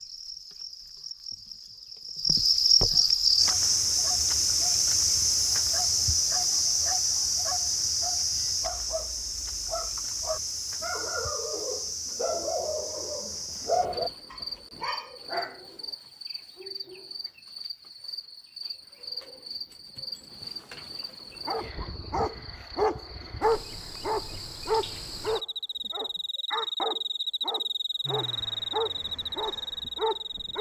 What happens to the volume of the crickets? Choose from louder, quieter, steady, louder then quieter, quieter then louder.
quieter then louder.